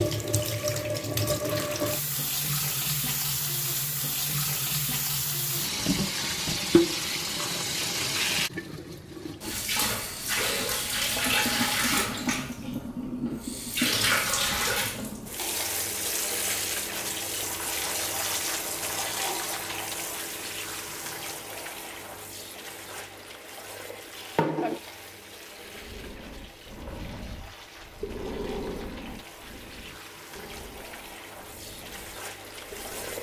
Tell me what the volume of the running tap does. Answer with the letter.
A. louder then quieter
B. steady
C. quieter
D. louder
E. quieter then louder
C.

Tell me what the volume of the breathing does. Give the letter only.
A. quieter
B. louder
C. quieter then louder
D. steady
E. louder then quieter
E.